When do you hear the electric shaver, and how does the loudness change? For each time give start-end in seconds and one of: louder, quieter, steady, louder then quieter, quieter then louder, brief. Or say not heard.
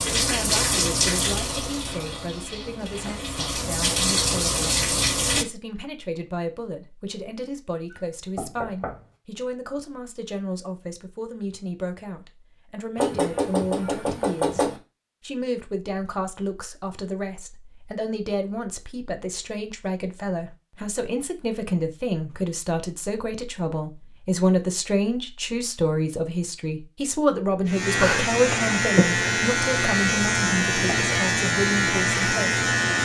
27.6-33.0 steady.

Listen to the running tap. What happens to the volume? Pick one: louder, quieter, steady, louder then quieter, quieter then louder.
quieter then louder.